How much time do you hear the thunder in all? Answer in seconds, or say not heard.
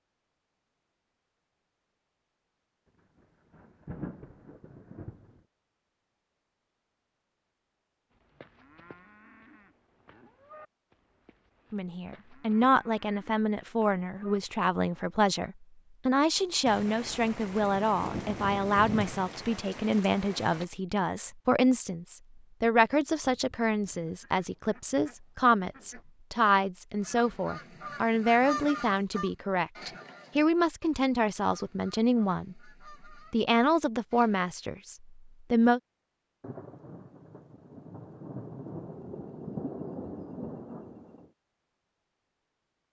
11 s.